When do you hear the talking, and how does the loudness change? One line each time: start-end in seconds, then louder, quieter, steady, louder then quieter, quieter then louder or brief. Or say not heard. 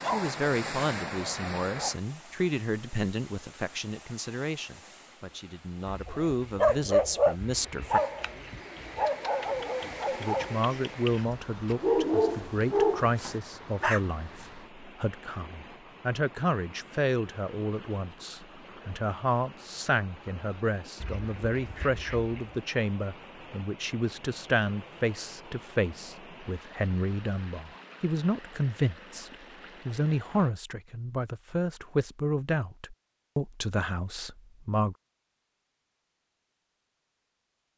0.0-8.0 quieter then louder
10.2-35.0 steady.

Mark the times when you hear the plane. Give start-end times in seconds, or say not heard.
not heard.